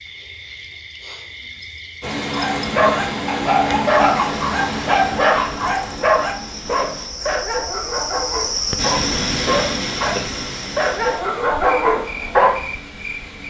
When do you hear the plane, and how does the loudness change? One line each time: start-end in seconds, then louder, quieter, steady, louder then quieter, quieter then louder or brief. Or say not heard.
2.0-7.1 quieter
8.8-13.4 quieter.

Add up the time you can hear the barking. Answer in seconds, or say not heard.
10 s.